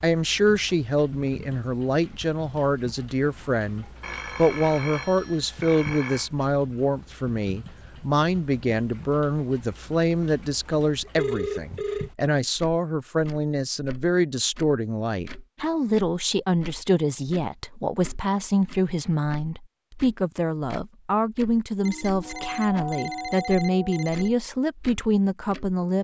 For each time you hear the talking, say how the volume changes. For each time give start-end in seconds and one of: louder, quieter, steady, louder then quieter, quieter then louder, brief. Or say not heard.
0.0-25.9 steady.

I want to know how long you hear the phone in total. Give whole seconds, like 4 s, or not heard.
6 s.